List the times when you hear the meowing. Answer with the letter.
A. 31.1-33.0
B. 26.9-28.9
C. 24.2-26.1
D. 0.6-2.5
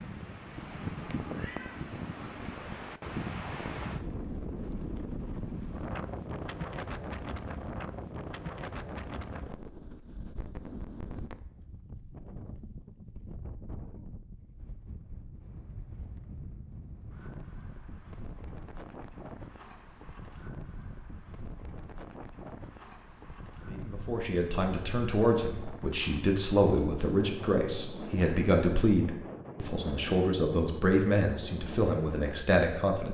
D.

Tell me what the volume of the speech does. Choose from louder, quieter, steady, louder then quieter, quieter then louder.
steady.